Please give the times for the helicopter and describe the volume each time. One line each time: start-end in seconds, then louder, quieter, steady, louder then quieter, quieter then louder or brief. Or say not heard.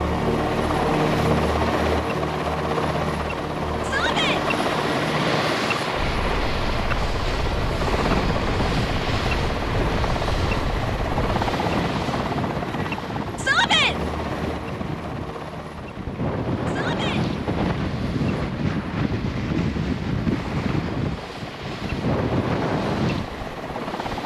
0.0-24.2 quieter.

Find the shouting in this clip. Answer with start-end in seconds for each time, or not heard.
3.8-4.4, 13.3-13.9, 16.6-17.2.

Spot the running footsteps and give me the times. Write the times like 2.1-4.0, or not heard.
not heard.